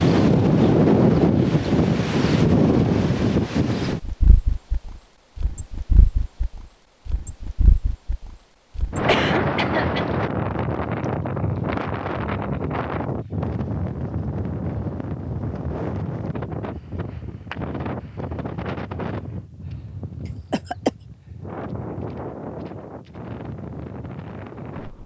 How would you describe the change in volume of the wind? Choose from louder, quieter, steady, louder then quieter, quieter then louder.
quieter.